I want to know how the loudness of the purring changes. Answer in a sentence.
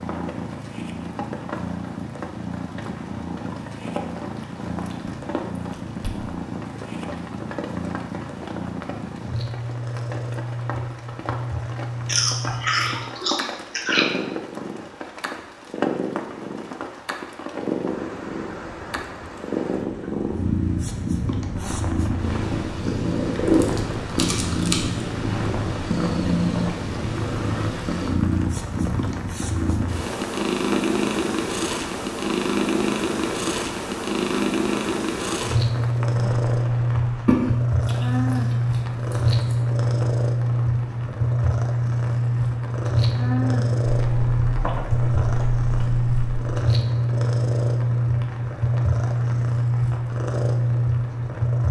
The volume of the purring goes up.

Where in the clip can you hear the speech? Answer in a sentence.
The speech can't be heard in this clip.